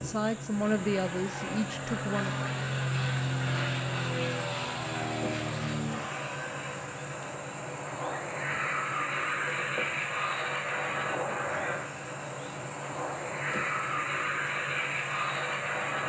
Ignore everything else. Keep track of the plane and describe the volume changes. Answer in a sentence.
The volume of the plane stays about the same.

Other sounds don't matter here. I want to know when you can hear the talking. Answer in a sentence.
The talking can be heard from 0.0 to 2.4 s.